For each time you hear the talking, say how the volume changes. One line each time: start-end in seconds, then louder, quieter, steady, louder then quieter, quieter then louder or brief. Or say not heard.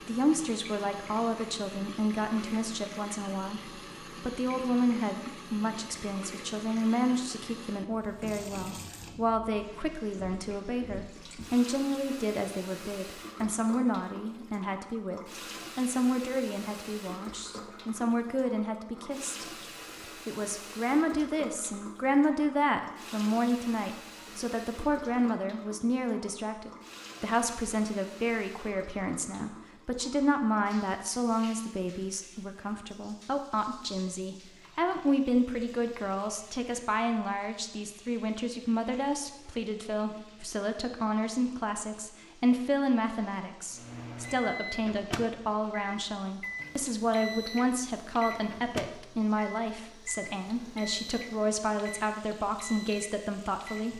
0.1-53.9 steady.